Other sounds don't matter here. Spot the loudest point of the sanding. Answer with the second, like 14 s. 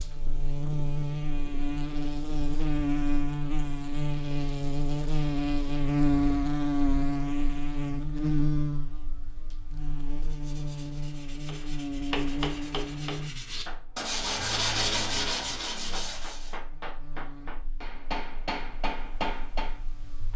15 s.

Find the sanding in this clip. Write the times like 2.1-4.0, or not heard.
10.2-16.6.